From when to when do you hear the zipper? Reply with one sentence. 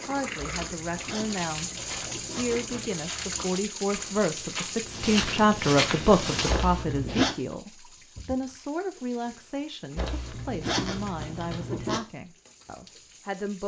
The zipper can be heard from 0.3 to 2.9 s, from 6.5 to 7.3 s and from 9.9 to 12.0 s.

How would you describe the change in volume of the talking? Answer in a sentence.
The loudness of the talking goes up, then down.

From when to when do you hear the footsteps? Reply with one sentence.
The footsteps can be heard from 1.7 to 6.7 s.